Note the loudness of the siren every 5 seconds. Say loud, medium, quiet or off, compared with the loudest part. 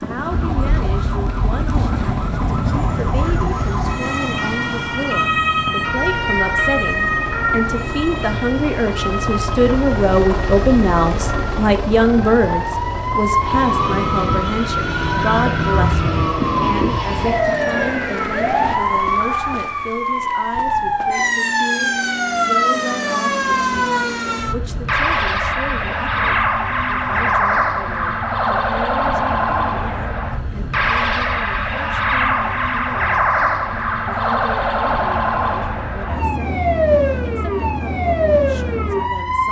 medium, loud, loud, loud, loud, loud, loud, loud.